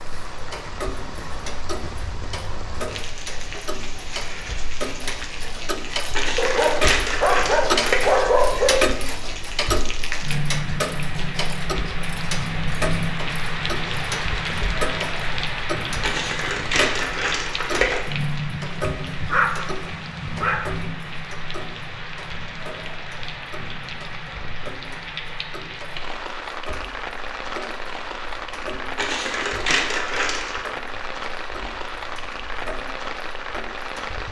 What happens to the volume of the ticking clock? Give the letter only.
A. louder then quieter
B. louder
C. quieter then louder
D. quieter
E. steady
A.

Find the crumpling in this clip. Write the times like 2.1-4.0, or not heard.
6.2-8.2, 16.0-18.1, 28.9-30.6.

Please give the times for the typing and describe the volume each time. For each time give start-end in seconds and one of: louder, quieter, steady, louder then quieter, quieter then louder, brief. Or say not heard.
not heard.